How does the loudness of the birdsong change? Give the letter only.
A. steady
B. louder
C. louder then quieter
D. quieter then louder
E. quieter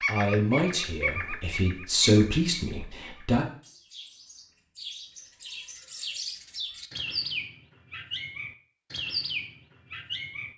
D.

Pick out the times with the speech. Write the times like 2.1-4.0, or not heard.
0.1-3.5.